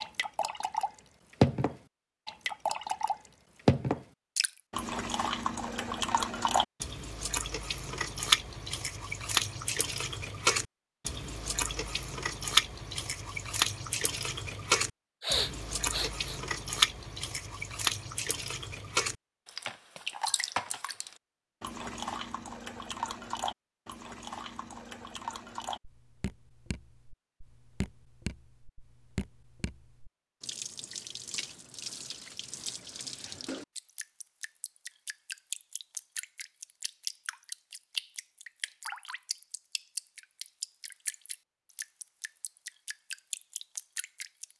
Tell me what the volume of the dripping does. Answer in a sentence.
The loudness of the dripping goes down.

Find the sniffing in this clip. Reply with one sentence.
You can hear the sniffing from 15.2 to 16.4 s.